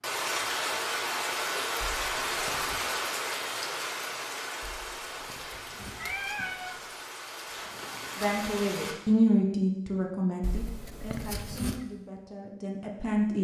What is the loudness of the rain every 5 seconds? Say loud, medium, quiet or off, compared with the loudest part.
loud, medium, off.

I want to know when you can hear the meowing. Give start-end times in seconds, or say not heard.
1.9-2.9, 4.6-7.0, 10.4-11.8.